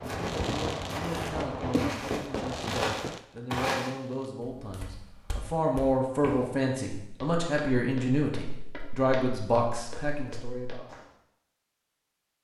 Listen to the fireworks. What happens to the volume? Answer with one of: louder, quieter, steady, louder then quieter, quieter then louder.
quieter.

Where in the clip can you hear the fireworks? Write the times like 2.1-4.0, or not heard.
0.0-4.3.